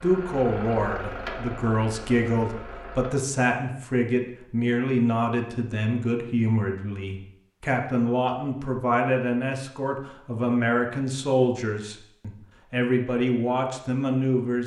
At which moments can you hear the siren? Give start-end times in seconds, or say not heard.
not heard.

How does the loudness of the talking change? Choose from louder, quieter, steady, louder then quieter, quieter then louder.
steady.